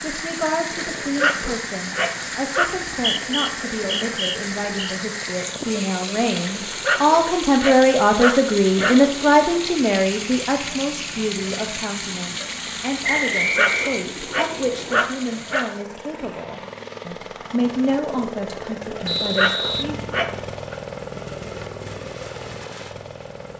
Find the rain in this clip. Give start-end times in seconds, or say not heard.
0.0-15.8.